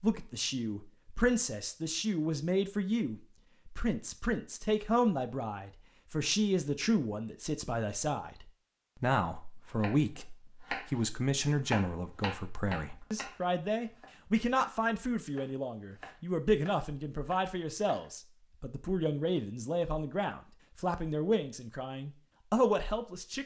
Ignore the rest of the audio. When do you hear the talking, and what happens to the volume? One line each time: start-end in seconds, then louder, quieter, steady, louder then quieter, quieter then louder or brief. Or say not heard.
0.0-23.4 steady.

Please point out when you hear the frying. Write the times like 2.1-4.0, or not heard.
not heard.